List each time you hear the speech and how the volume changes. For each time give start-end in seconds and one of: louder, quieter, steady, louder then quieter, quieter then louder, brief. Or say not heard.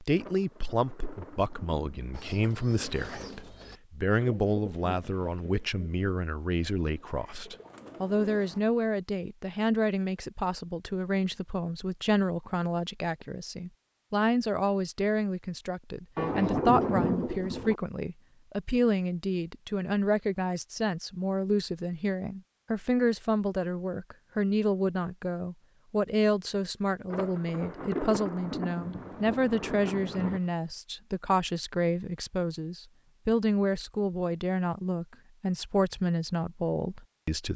0.0-37.5 steady.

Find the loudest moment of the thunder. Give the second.
17 s.